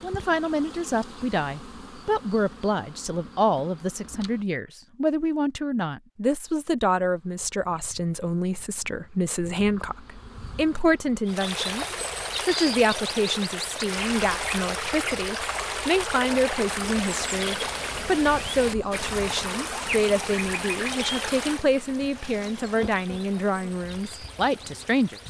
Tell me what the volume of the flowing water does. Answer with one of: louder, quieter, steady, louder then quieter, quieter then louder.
quieter.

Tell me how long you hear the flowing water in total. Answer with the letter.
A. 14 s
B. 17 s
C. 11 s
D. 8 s
A.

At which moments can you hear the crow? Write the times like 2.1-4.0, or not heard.
not heard.